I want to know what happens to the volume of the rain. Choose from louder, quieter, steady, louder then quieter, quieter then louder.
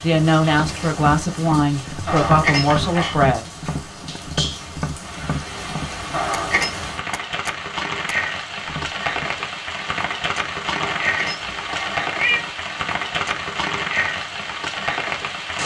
louder.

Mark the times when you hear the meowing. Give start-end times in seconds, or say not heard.
2.0-3.1, 6.1-6.8, 10.8-12.5.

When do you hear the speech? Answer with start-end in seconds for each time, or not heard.
0.0-3.5.